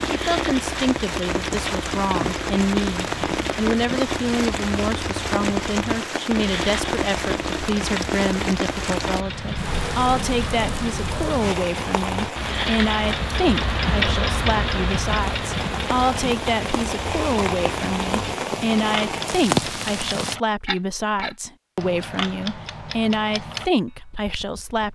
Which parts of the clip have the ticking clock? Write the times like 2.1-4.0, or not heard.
0.0-24.9.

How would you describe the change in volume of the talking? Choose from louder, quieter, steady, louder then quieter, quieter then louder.
steady.